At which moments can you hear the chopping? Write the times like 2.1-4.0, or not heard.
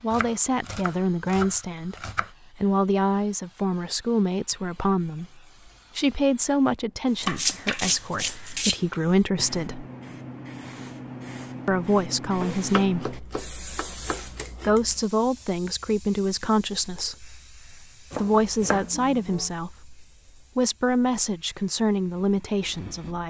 0.1-2.3, 7.2-8.9, 12.4-14.7, 18.1-19.5.